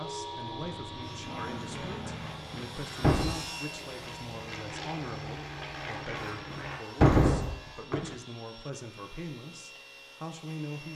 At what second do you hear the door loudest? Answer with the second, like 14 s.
7 s.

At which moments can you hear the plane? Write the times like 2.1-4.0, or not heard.
0.0-6.8.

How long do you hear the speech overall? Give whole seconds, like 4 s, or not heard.
11 s.